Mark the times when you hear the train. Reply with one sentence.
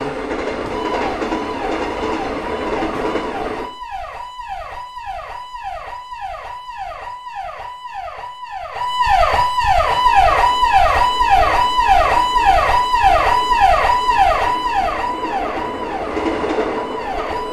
The train can be heard from 0.0 to 3.7 s and from 9.8 to 17.4 s.